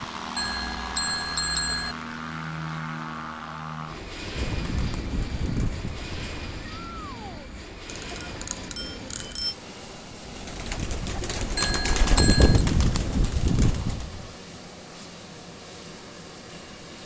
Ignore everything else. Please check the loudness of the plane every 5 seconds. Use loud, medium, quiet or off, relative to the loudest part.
loud, medium, medium, medium.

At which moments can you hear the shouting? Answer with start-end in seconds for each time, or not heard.
6.7-7.5.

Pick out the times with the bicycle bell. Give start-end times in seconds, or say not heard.
0.3-1.9, 7.8-9.6, 11.6-12.7.